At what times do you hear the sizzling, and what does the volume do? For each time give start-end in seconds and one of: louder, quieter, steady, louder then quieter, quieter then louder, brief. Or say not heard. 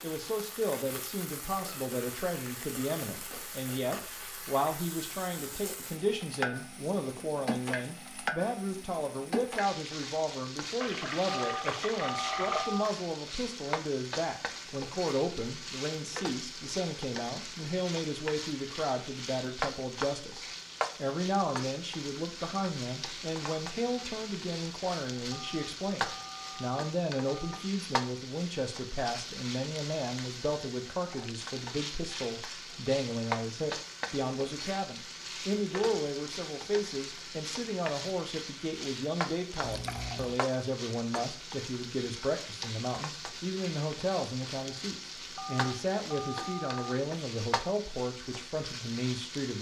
0.0-49.5 steady.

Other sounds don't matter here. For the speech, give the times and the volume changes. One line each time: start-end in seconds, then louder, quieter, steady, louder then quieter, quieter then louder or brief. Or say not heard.
0.0-49.5 steady.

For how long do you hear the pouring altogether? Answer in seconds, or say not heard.
3 s.